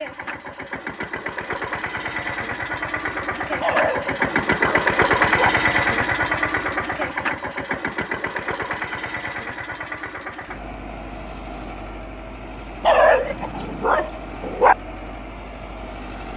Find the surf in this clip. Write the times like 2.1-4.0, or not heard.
not heard.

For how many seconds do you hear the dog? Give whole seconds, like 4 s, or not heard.
4 s.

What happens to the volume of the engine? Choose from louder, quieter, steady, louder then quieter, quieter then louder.
louder then quieter.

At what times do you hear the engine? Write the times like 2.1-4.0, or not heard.
0.0-16.3.